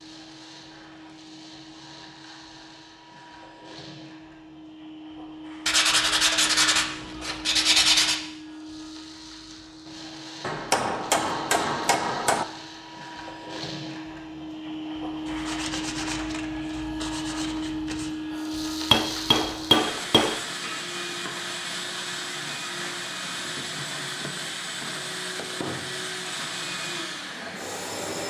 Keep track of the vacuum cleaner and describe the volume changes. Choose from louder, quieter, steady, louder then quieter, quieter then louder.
louder.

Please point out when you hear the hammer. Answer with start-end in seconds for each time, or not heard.
10.4-12.4, 18.9-20.4.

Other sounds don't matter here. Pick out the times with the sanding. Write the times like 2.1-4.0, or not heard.
5.7-8.2, 15.2-18.1.